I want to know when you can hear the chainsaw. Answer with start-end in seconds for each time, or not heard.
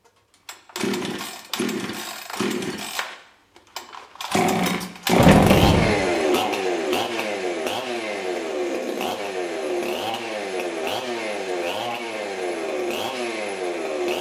0.5-14.1.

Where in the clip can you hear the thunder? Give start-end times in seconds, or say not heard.
5.2-6.0.